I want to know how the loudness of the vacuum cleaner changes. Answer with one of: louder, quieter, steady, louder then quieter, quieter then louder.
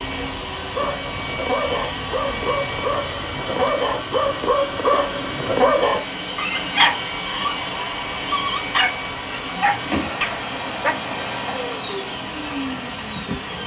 steady.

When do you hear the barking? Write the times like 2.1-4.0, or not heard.
0.8-10.9.